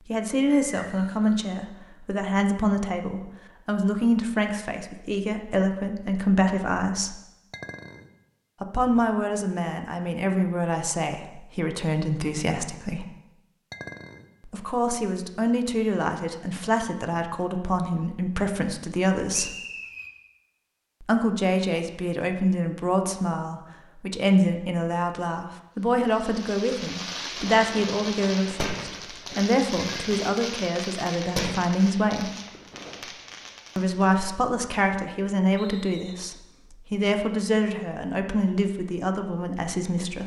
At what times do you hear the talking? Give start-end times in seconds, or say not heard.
0.1-7.2, 8.6-13.1, 14.4-19.6, 21.0-32.3, 33.8-40.2.